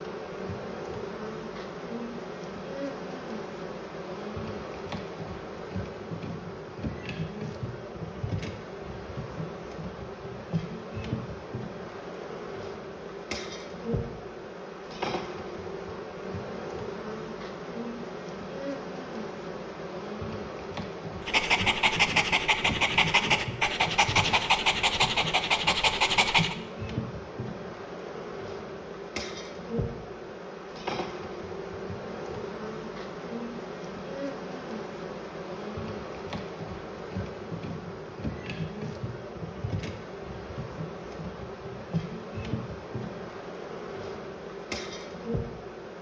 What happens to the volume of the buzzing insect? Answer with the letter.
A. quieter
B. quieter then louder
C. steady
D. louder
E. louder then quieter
C.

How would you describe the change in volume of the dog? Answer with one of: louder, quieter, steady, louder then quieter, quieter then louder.
steady.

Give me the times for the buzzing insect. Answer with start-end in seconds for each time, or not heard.
0.0-45.9.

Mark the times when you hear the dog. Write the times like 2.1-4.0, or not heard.
21.2-26.6.